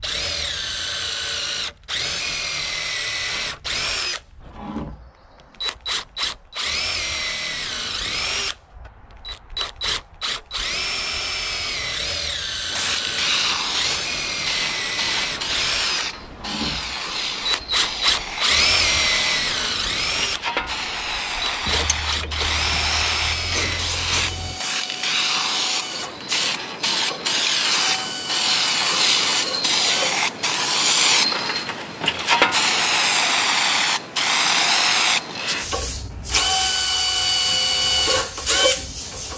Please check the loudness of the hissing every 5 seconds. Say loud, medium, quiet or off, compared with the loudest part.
off, off, medium, medium, medium, loud, loud, medium.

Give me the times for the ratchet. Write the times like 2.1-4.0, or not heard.
21.6-24.6.